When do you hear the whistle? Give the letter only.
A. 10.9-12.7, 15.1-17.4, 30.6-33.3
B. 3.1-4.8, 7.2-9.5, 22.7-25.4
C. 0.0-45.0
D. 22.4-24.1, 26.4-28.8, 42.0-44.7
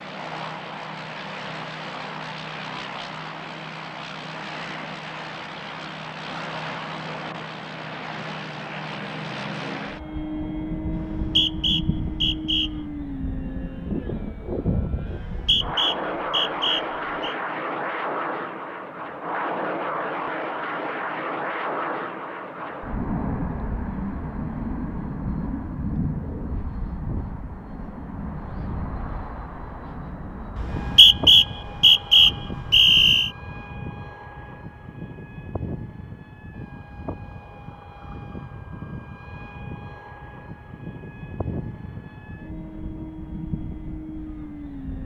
A.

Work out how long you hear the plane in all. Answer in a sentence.
The plane can be heard for 45 seconds in total.